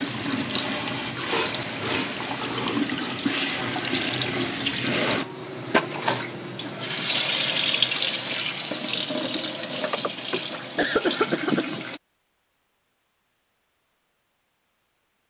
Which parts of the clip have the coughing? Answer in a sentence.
The coughing can be heard from 9.9 to 11.8 s.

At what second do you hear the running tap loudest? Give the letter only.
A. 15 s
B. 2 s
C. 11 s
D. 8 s
D.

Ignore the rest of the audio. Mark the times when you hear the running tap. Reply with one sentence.
The running tap can be heard from 0.0 to 12.0 s.